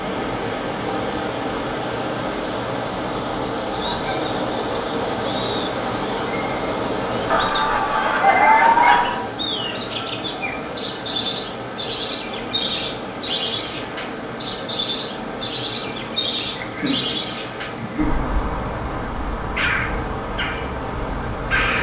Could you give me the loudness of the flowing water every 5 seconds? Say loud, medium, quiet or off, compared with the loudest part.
loud, loud, medium, medium, medium.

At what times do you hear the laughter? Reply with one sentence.
You can hear the laughter from 3.7 to 5.7 s, from 7.3 to 9.2 s and from 16.6 to 18.3 s.